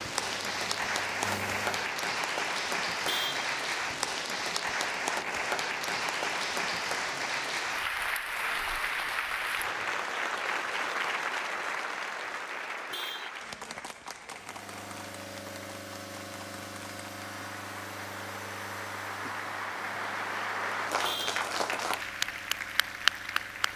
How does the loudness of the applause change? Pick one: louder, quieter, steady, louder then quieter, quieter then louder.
quieter then louder.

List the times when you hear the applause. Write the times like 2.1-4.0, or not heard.
0.0-23.7.